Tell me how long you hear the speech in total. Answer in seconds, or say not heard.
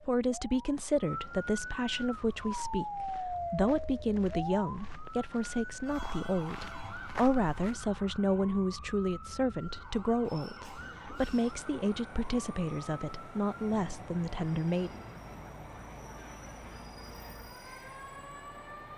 15 s.